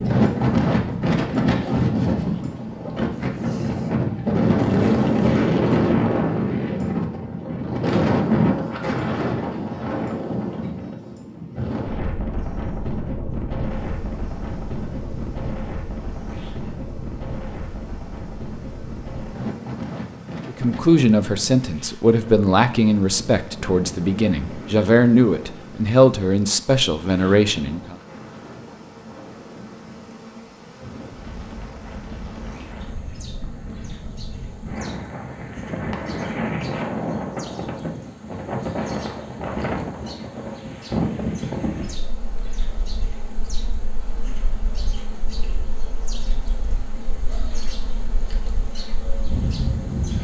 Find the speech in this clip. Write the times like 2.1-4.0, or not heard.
20.4-27.9.